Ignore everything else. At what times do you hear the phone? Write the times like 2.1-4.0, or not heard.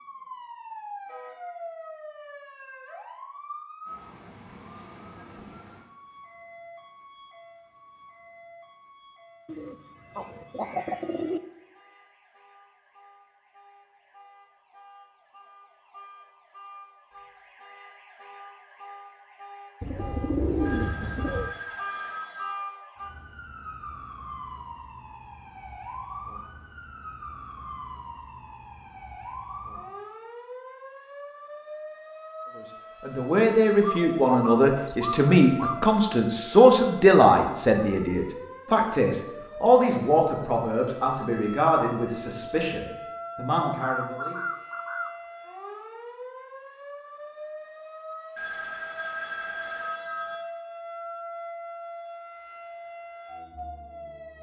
20.6-22.6, 48.4-50.4.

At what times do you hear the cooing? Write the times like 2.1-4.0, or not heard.
9.4-11.4, 19.8-21.5, 33.8-35.8, 43.6-45.1.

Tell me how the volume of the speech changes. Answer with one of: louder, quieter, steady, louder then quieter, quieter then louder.
quieter.